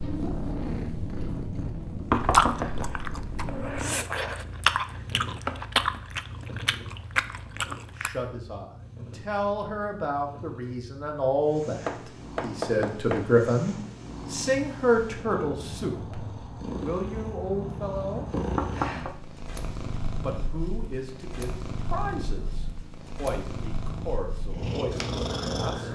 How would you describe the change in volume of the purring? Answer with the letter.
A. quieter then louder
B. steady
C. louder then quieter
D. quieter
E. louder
A.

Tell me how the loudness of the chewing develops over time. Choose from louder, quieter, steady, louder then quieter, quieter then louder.
louder.